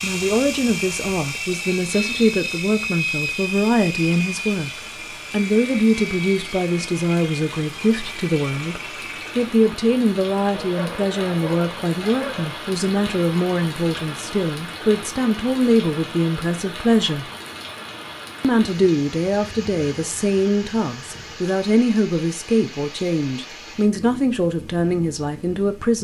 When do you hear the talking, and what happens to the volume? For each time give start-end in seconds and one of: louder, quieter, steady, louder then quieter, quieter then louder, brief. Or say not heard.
0.0-17.3 steady
18.4-25.9 steady.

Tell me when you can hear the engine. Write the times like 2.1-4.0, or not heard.
0.0-9.6.